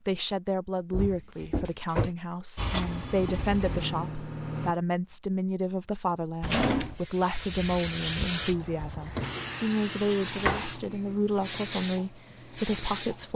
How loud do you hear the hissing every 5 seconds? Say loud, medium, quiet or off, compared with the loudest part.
off, loud, loud.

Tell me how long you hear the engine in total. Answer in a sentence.
You can hear the engine for 2 seconds altogether.